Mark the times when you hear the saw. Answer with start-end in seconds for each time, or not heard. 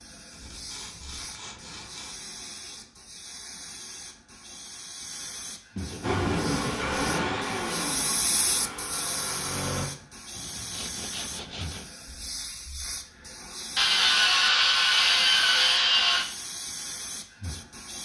0.3-2.1, 5.8-7.5, 10.3-11.8, 13.8-16.2.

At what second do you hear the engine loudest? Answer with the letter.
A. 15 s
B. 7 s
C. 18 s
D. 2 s
B.